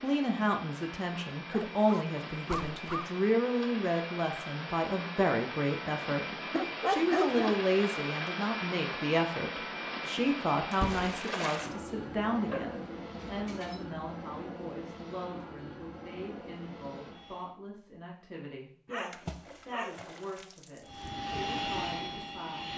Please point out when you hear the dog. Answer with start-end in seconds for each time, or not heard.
1.5-3.0, 6.5-7.5, 12.4-13.9, 18.9-20.0.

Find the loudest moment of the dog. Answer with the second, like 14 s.
7 s.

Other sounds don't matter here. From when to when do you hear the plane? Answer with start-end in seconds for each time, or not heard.
0.0-17.6, 20.9-22.7.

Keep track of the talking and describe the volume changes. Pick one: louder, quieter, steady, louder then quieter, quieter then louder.
quieter.